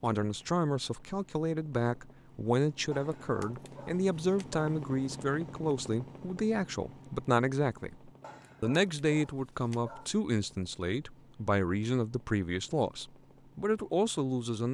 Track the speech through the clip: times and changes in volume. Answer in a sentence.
You can hear the speech from 0.0 to 14.7 s, at a steady volume.